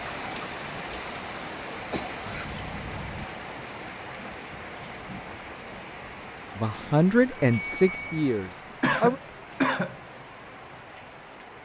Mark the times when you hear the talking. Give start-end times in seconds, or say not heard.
6.5-9.2.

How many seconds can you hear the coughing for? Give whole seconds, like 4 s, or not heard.
2 s.